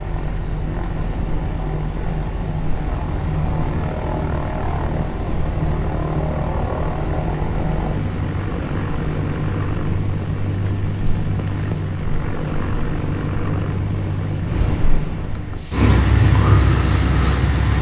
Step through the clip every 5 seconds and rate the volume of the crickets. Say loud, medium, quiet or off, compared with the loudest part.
medium, medium, medium, loud.